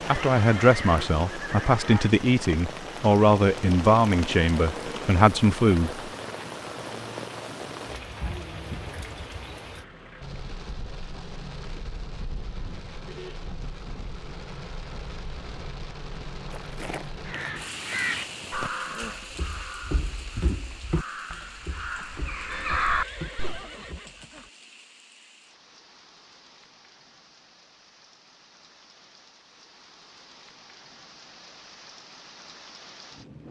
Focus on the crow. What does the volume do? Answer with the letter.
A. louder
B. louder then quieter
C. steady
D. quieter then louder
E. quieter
D.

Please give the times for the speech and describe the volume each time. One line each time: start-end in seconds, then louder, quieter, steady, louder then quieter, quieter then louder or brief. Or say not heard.
0.1-6.1 steady.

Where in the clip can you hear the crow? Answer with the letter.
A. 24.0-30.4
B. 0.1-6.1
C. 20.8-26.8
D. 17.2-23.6
D.